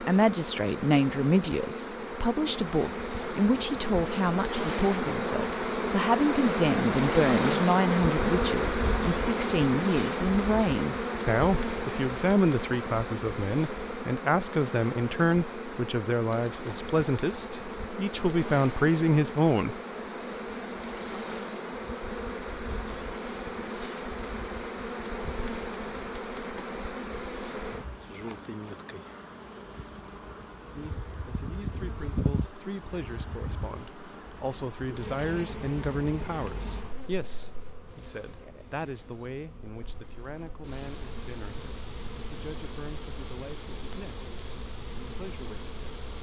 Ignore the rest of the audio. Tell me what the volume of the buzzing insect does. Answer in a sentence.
The loudness of the buzzing insect goes down.